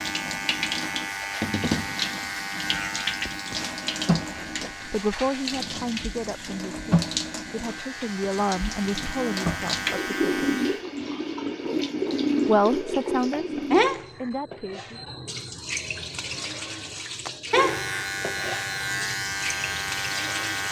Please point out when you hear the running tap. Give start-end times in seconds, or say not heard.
0.0-20.6.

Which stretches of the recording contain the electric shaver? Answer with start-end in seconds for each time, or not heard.
0.0-10.8, 17.5-20.6.